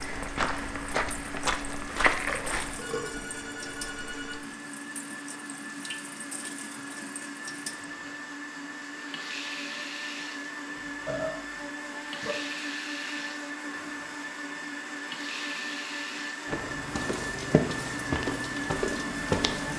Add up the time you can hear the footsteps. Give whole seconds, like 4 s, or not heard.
6 s.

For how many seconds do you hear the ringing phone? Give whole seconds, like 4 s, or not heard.
2 s.